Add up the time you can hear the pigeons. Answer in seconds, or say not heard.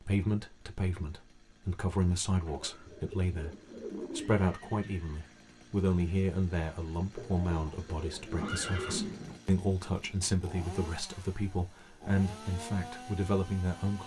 4 s.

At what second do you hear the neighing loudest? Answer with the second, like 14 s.
9 s.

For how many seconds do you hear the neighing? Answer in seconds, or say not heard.
2 s.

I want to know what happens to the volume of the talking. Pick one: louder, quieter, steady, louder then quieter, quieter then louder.
steady.